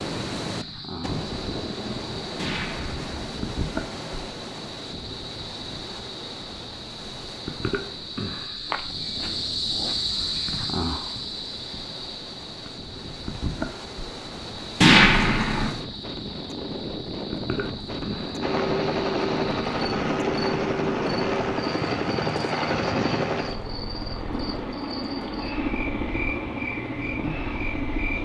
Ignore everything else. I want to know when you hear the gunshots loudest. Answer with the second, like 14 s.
15 s.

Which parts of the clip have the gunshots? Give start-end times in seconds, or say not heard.
2.4-3.1, 14.8-15.7.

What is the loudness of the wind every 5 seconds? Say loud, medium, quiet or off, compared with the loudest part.
loud, medium, medium, loud, loud, off.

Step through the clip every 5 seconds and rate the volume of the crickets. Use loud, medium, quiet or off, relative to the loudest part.
medium, loud, loud, medium, medium, loud.